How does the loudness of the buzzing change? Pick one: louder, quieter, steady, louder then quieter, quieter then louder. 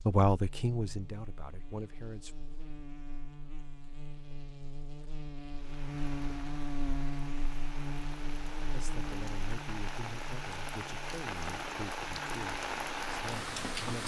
louder then quieter.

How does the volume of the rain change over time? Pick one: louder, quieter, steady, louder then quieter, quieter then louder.
louder.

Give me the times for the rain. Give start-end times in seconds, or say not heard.
5.5-14.0.